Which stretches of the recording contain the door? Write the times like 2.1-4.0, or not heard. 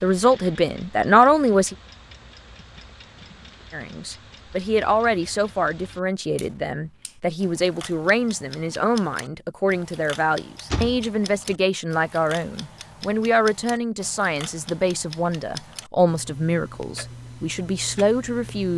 10.7-11.6.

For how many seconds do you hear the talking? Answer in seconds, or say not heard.
17 s.